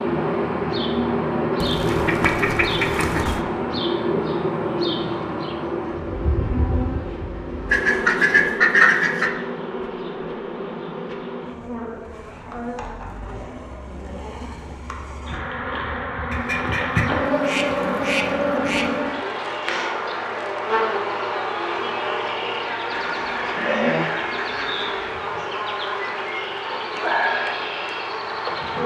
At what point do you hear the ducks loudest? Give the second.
9 s.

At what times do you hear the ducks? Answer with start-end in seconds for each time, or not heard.
1.6-3.4, 7.7-9.3, 16.3-19.1, 22.9-25.1.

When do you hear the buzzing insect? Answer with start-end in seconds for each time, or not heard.
0.0-28.8.